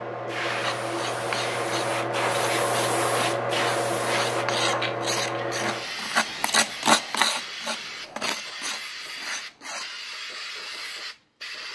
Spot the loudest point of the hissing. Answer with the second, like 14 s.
3 s.